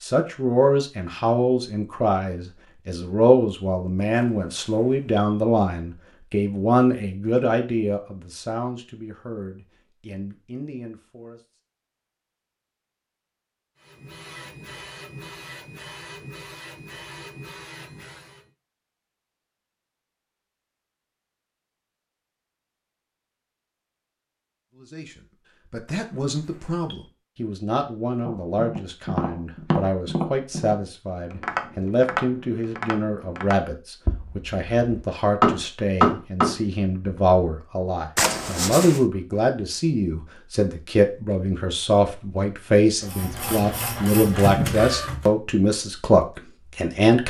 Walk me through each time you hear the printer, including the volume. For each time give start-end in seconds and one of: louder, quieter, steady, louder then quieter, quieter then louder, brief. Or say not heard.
13.8-18.5 steady
43.0-45.3 brief.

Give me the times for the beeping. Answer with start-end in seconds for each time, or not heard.
4.2-5.4, 25.9-27.1, 38.1-39.0.